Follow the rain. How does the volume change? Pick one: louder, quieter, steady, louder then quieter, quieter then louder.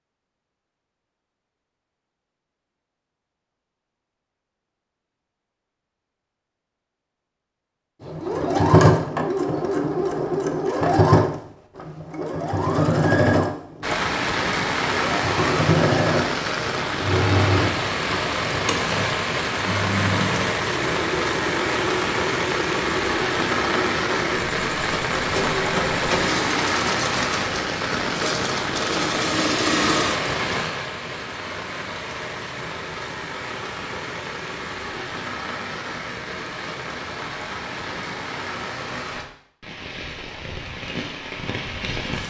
quieter.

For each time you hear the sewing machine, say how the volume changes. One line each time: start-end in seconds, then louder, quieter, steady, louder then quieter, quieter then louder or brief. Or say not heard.
8.0-30.4 quieter.